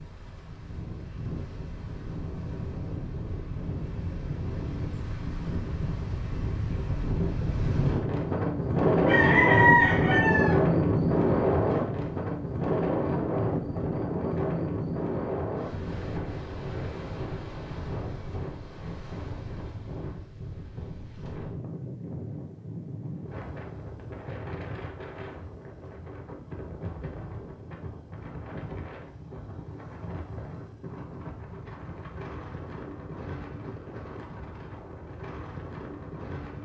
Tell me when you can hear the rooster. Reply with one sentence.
The rooster can be heard from 9.1 to 10.6 s.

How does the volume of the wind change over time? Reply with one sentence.
The volume of the wind goes up, then down.